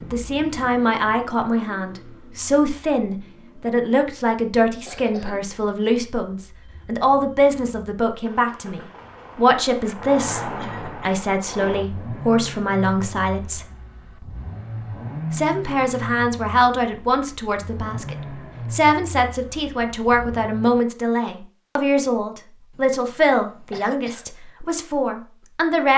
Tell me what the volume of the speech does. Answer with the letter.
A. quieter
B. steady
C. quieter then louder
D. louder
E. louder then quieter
B.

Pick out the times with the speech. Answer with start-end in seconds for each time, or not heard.
0.0-13.7, 15.3-25.9.